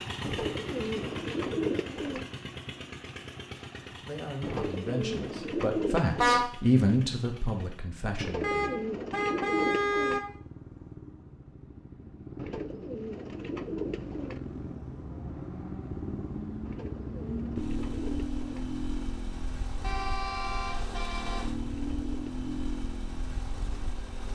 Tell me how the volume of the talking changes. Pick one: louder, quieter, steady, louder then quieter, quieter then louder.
louder then quieter.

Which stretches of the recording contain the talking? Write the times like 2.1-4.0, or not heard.
3.9-8.7.